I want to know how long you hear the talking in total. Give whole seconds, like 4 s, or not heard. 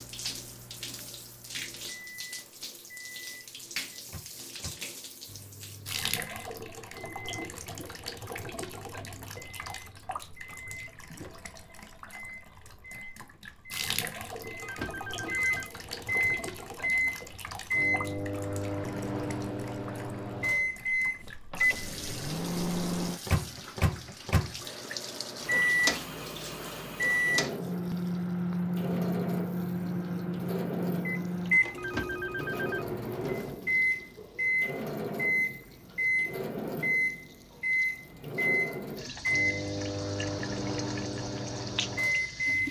not heard.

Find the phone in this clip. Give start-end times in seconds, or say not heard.
14.6-16.4, 31.8-33.8.